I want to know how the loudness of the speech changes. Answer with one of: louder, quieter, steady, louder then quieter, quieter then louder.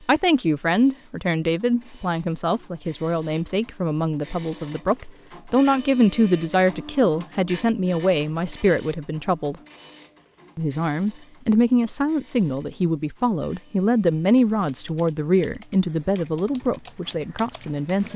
steady.